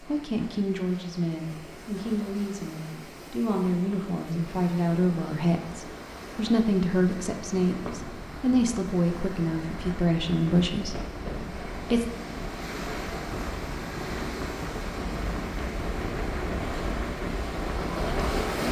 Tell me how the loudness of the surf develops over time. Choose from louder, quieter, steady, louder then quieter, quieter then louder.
louder.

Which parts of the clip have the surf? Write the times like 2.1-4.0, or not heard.
0.0-18.6.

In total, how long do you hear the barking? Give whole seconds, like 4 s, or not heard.
not heard.